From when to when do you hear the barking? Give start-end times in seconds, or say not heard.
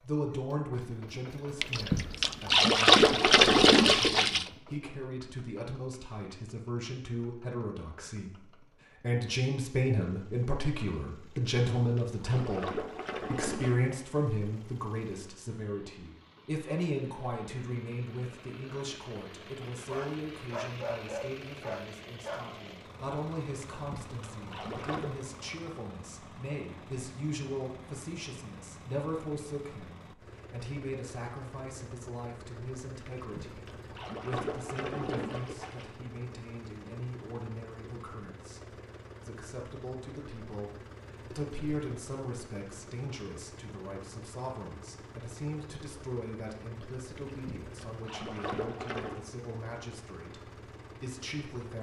19.9-22.4.